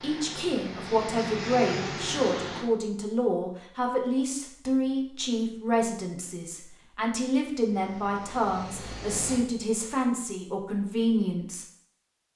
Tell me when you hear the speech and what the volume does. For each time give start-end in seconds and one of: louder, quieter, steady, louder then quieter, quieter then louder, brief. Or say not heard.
0.0-11.7 steady.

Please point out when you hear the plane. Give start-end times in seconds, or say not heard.
0.0-2.6, 7.7-9.4.